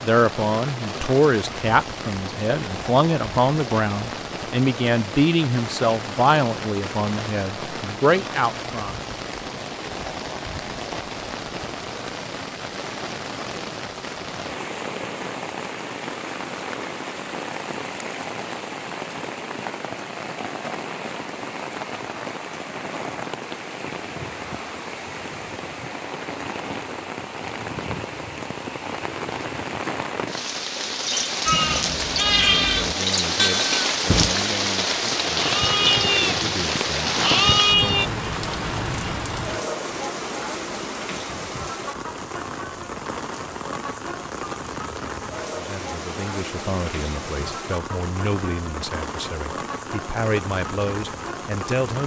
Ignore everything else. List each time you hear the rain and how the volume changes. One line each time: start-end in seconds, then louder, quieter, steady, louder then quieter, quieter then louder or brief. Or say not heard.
0.0-52.0 louder then quieter.